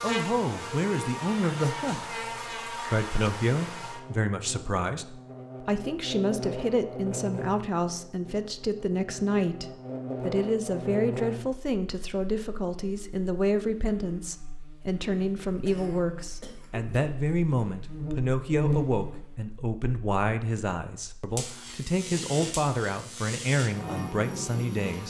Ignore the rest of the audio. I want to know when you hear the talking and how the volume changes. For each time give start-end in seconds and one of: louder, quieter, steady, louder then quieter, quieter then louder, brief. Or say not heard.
0.0-25.0 steady.